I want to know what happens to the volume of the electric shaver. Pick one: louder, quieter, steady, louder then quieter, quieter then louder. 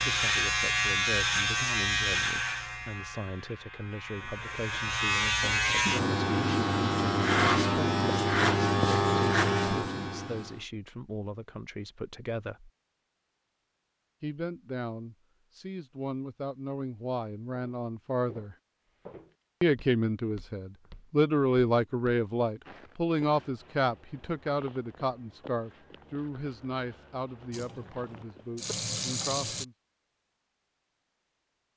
quieter then louder.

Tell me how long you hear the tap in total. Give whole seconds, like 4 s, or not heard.
2 s.